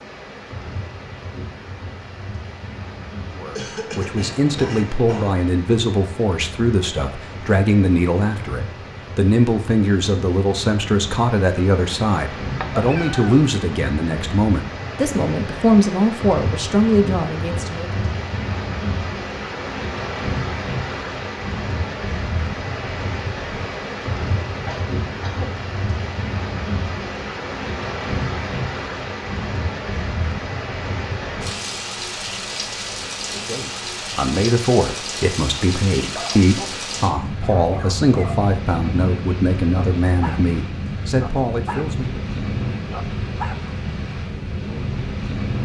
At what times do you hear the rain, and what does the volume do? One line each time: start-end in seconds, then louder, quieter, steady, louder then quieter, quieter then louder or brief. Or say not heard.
0.0-45.6 louder.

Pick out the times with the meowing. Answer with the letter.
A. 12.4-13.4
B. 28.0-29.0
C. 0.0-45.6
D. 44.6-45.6
A.